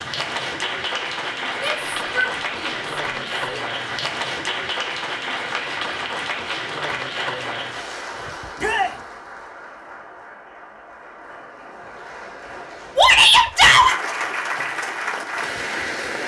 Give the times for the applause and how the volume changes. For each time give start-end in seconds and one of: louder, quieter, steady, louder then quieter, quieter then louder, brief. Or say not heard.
0.0-16.2 quieter then louder.